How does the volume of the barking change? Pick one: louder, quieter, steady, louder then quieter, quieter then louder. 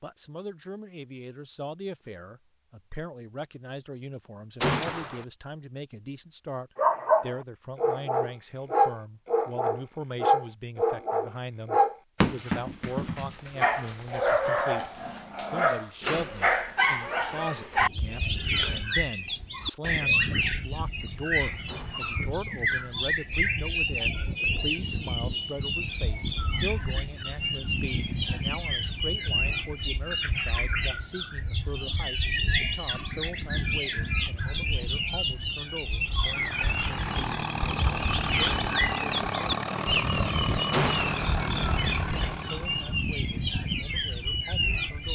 steady.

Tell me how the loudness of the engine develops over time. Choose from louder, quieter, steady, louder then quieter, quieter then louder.
steady.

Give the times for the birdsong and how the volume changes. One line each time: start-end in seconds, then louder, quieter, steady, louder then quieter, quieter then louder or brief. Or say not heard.
17.8-45.1 steady.